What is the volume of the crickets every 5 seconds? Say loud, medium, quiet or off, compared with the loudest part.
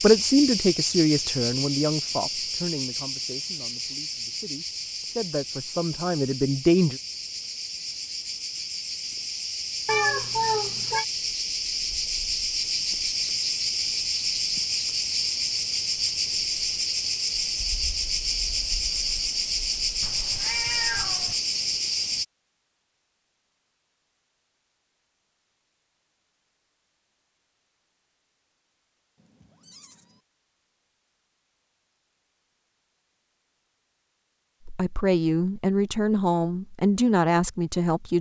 loud, medium, loud, loud, loud, off, off, off.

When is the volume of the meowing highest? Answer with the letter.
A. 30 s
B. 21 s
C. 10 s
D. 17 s
C.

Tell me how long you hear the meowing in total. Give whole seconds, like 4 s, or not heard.
4 s.